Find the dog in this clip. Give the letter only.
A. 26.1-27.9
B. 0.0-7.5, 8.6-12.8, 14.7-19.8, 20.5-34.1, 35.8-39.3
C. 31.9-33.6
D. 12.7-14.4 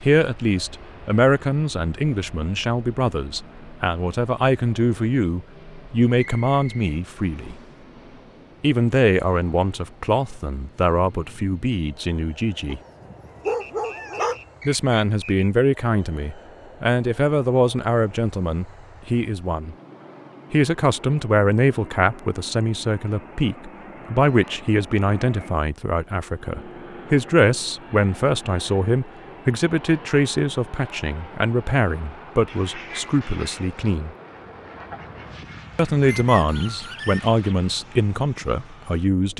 D.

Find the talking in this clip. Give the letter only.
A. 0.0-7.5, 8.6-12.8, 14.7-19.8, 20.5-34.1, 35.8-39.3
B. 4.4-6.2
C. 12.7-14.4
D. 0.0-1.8
A.